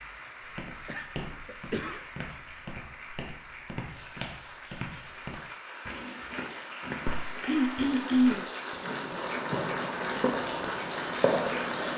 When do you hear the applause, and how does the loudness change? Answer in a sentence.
The applause can be heard from 0.0 to 11.9 s, getting louder.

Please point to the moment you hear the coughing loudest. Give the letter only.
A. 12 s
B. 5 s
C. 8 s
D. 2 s
C.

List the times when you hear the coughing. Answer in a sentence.
The coughing can be heard from 0.8 to 2.0 s and from 7.5 to 8.4 s.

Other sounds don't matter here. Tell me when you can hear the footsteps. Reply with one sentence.
The footsteps can be heard from 0.4 to 8.6 s.